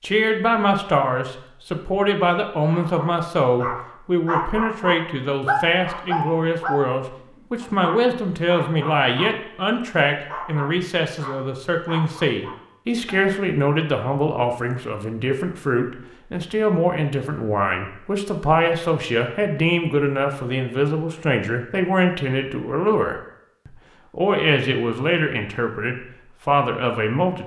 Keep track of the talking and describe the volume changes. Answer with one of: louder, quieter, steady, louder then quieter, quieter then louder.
steady.